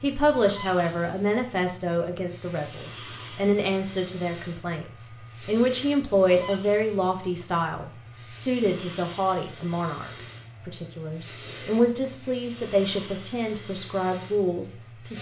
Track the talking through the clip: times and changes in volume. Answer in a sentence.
The talking can be heard from 0.0 to 15.1 s, at a steady volume.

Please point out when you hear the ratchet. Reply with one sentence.
The ratchet can't be heard in this clip.